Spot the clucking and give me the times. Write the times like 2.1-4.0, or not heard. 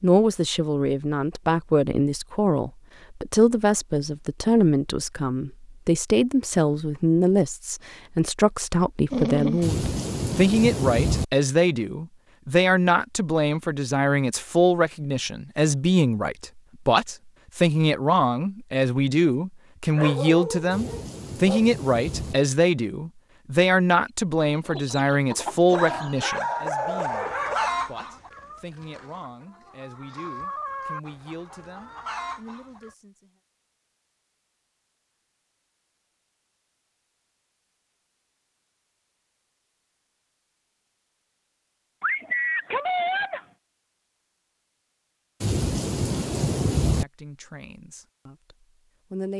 24.4-33.0.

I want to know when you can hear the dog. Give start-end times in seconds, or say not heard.
9.1-9.7, 19.9-21.6, 25.7-27.7, 42.0-43.5.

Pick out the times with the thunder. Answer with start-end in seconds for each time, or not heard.
9.6-11.2, 20.7-22.4, 45.4-47.0.